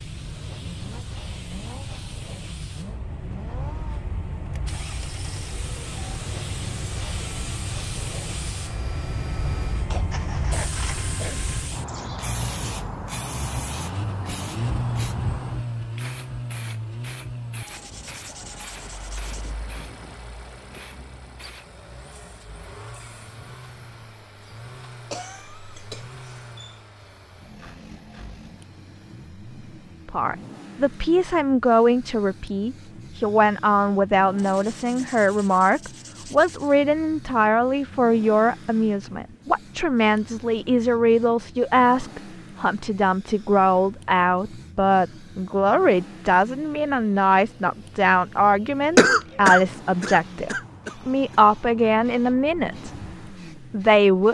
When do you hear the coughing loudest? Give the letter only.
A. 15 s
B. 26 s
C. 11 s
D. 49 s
D.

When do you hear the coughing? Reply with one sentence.
You can hear the coughing from 9.9 to 11.4 s, from 25.1 to 26.8 s and from 49.0 to 51.0 s.